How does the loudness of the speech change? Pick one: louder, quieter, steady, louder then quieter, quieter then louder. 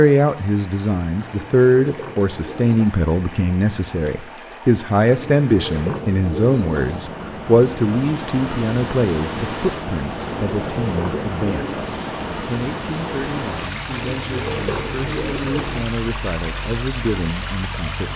quieter.